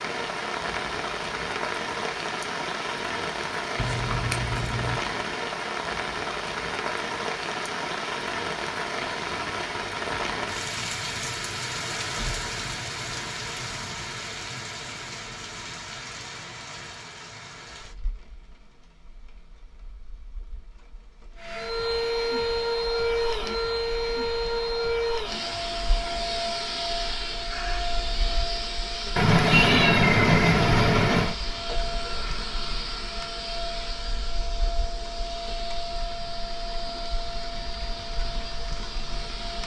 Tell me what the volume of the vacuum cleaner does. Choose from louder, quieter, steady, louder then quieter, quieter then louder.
quieter.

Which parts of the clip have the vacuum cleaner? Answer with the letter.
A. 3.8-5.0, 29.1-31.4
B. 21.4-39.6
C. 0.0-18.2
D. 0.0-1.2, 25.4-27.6
B.